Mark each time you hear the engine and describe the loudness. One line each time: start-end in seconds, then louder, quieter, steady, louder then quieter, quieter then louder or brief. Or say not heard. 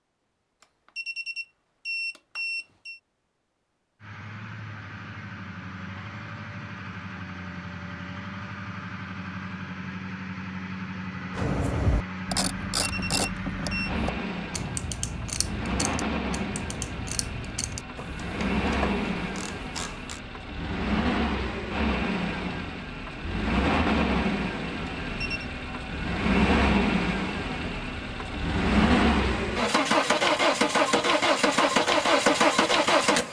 4.0-33.2 louder.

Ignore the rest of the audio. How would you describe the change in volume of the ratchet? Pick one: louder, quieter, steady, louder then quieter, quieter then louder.
quieter.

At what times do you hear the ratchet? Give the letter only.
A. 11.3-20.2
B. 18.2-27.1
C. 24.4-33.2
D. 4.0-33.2
A.